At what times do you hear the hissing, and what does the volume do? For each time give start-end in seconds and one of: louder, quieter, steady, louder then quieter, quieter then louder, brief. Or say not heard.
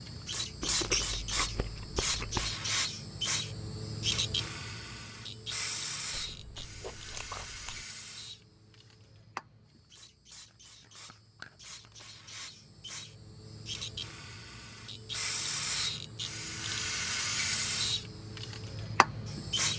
0.0-19.7 quieter then louder.